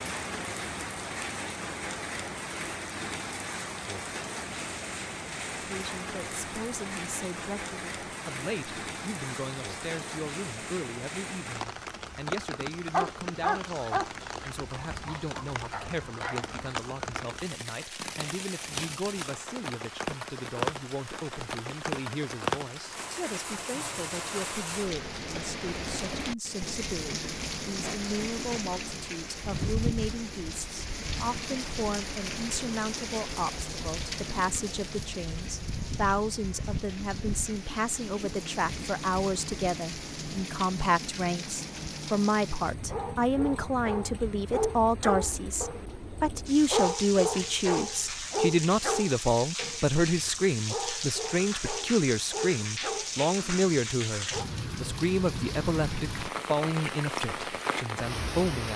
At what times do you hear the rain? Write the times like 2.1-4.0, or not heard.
0.0-58.7.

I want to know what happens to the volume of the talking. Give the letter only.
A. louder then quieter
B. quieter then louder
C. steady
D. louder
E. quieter
D.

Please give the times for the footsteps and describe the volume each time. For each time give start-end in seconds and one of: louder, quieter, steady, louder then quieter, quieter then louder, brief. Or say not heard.
not heard.